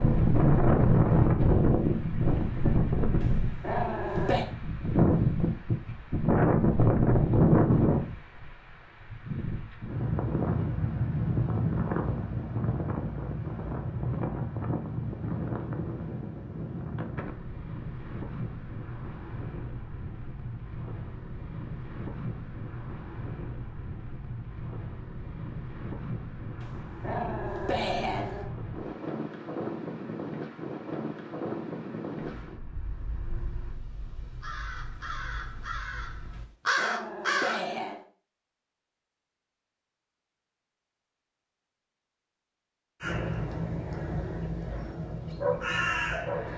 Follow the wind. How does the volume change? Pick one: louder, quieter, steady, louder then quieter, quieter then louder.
quieter.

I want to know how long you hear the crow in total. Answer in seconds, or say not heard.
9 s.